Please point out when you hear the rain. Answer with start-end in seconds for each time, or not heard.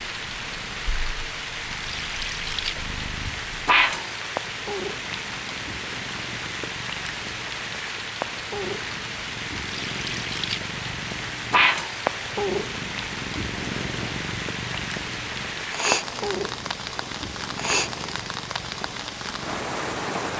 0.0-20.3.